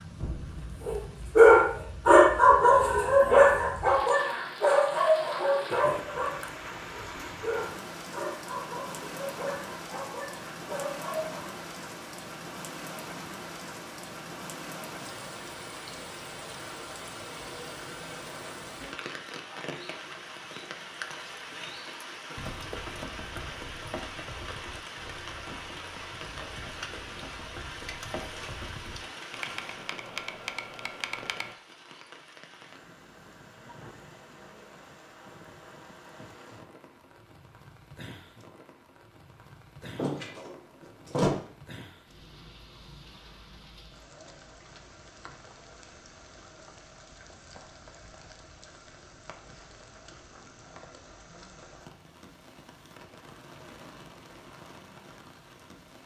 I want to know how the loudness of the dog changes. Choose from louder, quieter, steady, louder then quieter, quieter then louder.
quieter.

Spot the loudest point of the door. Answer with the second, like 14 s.
41 s.